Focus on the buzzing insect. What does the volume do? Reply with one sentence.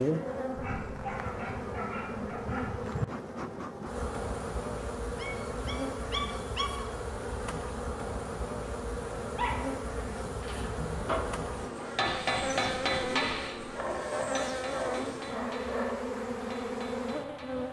The volume of the buzzing insect stays about the same.